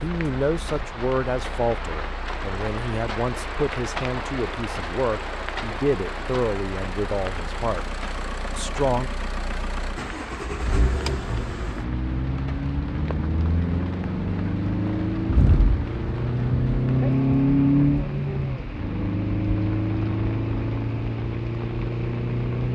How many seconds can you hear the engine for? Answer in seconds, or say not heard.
22 s.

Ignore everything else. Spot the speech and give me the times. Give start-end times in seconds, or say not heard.
0.0-8.0, 8.6-9.1.